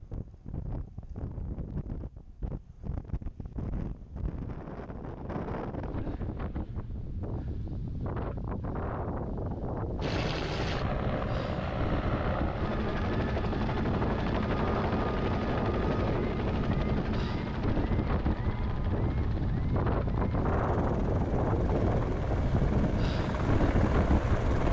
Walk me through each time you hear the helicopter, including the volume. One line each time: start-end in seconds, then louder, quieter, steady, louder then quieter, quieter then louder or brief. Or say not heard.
10.0-24.6 quieter then louder.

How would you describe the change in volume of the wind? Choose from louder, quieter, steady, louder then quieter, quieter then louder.
louder.